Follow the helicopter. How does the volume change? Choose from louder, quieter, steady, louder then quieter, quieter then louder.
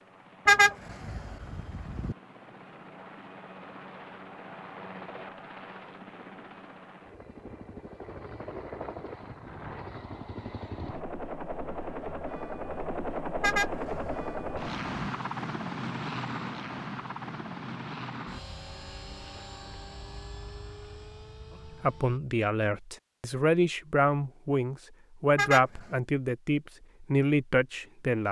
louder then quieter.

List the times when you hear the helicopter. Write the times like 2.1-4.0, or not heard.
0.0-22.2.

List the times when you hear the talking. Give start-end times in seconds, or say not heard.
21.8-28.2.